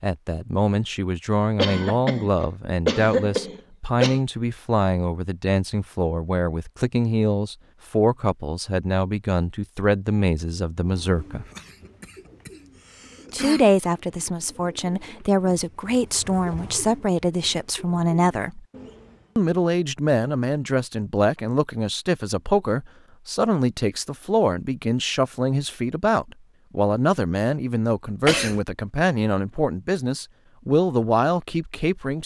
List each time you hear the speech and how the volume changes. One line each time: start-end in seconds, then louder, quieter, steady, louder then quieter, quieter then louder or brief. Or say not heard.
0.0-11.4 steady
13.3-18.6 steady
19.4-32.2 steady.